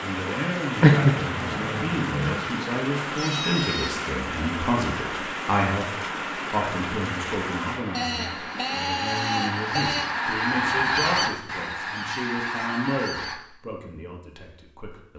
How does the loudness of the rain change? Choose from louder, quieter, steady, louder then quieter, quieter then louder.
quieter.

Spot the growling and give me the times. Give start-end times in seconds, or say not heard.
0.8-2.4.